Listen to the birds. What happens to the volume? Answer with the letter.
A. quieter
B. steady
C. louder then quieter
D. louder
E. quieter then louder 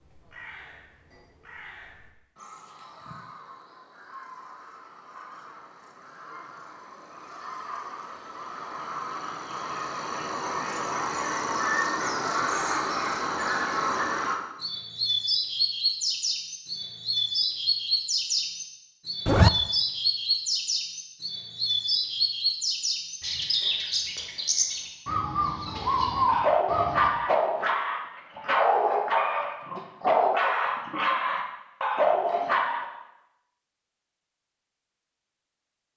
D.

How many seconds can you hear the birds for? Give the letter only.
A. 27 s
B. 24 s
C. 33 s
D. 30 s
A.